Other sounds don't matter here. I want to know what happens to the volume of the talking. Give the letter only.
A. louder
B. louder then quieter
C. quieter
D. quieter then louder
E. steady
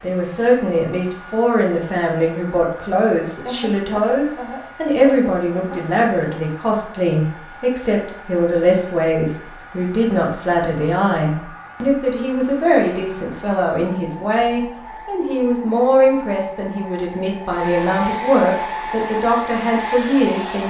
E.